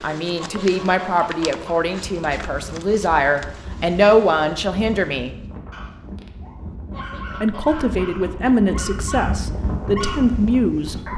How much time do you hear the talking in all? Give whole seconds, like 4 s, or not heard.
9 s.